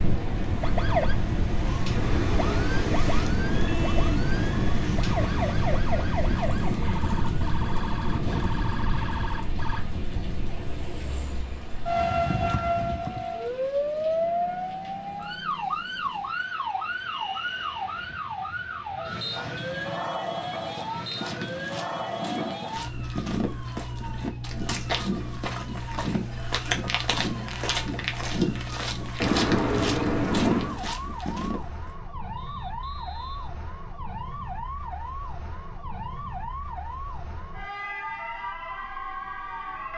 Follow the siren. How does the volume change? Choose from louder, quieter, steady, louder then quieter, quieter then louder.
quieter.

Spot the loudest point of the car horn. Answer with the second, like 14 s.
30 s.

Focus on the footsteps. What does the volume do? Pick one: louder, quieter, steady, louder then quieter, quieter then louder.
louder.